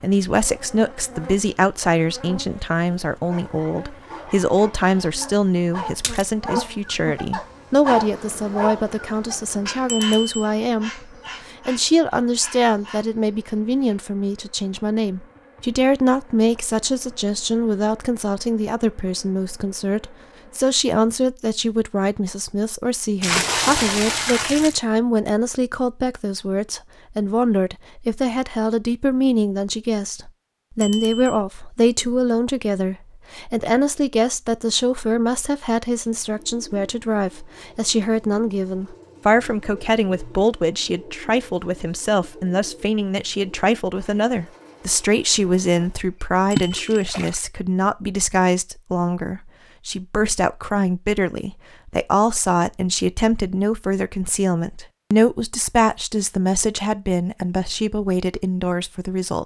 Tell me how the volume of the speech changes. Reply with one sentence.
The loudness of the speech stays about the same.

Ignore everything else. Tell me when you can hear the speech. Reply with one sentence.
You can hear the speech from 0.0 to 59.4 s.